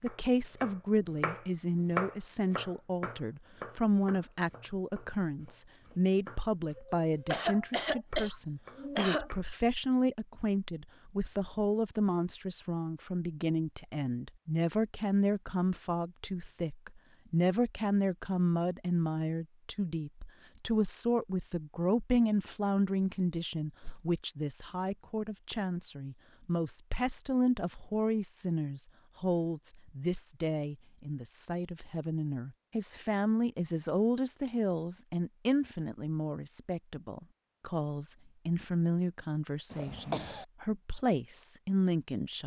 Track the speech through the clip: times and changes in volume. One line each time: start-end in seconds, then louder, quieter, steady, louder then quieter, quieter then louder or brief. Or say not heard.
0.0-42.4 steady.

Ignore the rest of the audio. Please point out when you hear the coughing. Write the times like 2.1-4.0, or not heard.
6.8-9.3, 39.7-40.5.